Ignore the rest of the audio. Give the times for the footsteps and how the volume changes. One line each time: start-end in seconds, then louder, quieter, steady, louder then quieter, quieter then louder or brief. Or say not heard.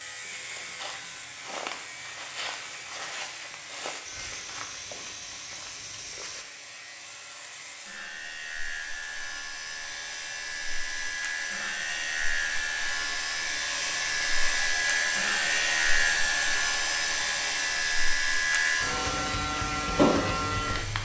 0.2-6.5 steady.